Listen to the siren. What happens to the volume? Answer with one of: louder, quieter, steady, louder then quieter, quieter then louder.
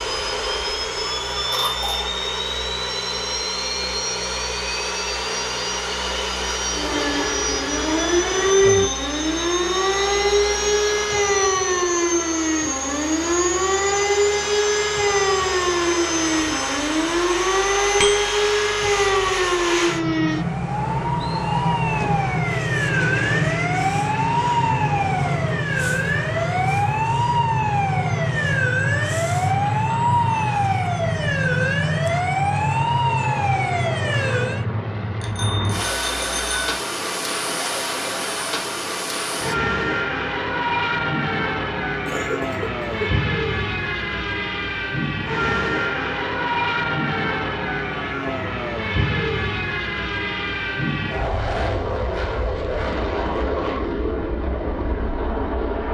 steady.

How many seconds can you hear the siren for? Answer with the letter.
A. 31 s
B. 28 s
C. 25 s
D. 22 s
B.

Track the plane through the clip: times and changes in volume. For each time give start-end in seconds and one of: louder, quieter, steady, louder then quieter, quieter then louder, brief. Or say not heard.
0.0-55.8 steady.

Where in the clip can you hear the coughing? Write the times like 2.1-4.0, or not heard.
1.5-2.1, 42.0-43.1.